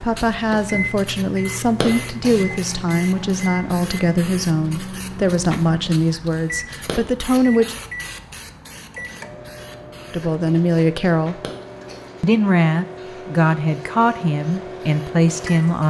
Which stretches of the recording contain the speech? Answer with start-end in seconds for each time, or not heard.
0.0-7.8, 10.1-11.3, 12.2-15.8.